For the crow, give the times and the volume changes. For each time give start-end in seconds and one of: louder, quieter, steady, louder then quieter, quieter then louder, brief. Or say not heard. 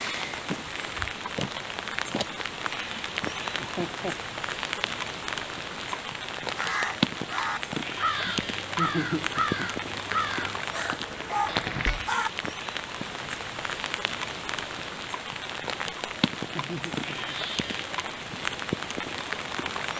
6.5-12.3 steady.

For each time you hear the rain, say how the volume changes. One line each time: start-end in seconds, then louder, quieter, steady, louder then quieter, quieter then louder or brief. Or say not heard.
0.0-19.9 steady.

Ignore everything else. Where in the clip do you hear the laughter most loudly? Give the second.
9 s.